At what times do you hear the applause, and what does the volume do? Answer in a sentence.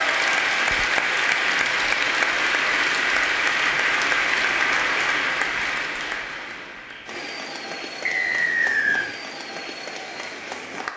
The applause can be heard from 0.0 to 10.9 s, getting quieter.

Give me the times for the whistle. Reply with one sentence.
You can hear the whistle from 8.1 to 9.1 s.